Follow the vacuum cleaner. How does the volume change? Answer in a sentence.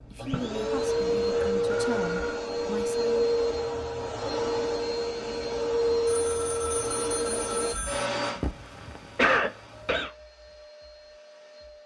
The volume of the vacuum cleaner goes down.